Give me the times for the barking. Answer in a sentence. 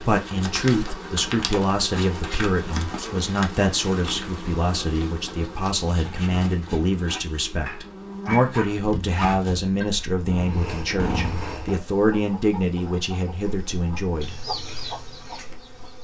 You can hear the barking from 7.7 to 9.4 s.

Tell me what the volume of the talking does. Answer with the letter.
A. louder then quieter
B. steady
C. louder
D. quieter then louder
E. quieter
B.